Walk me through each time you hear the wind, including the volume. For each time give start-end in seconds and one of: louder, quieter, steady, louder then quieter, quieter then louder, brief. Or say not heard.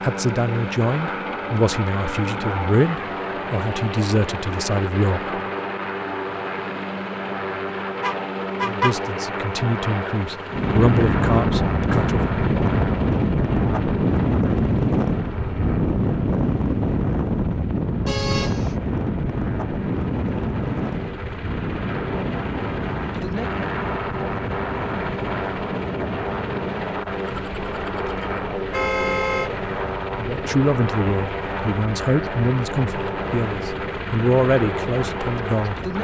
10.4-35.9 quieter.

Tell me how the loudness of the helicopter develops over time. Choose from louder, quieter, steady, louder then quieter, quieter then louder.
quieter then louder.